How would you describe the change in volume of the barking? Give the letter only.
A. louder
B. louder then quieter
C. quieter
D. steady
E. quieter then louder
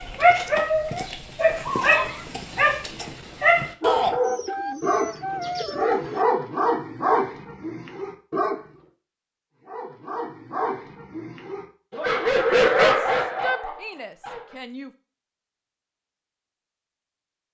E.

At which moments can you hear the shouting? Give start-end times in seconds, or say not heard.
3.8-4.2, 12.9-14.9.